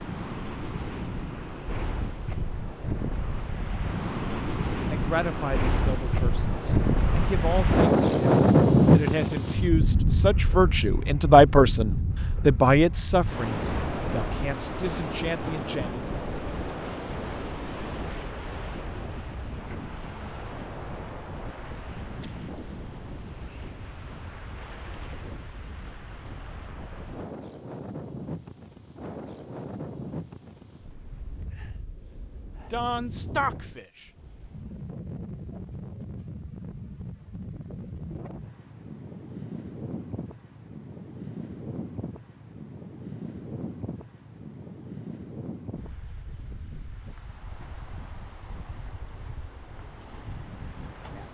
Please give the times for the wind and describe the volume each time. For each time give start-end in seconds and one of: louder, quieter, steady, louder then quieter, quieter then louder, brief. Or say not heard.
0.0-51.2 quieter.